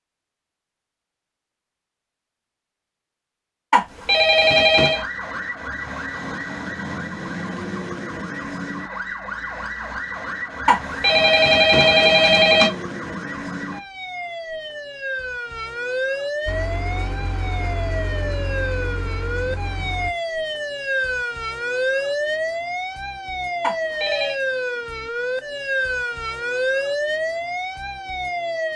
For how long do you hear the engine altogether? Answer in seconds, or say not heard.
4 s.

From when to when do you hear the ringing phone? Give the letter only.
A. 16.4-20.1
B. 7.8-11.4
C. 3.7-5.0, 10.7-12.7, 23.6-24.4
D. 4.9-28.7
C.